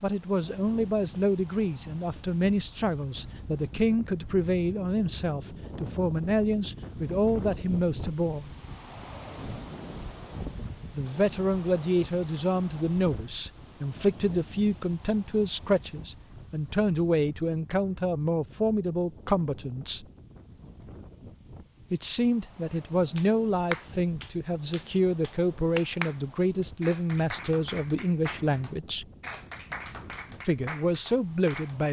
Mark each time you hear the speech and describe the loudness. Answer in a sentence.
The speech can be heard from 0.0 to 8.5 s, at a steady volume; from 10.9 to 20.1 s, at a steady volume; from 21.9 to 29.1 s, at a steady volume; and briefly from 30.4 to 31.8 s.